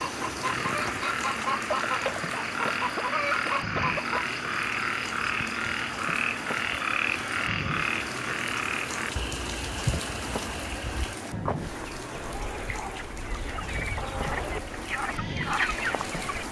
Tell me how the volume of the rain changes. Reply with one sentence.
The volume of the rain stays about the same.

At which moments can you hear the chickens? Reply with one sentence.
The chickens can be heard from 0.0 to 4.3 s and from 11.8 to 16.4 s.